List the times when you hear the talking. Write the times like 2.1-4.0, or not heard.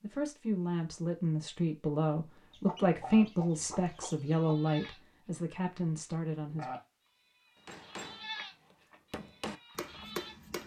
0.0-6.7.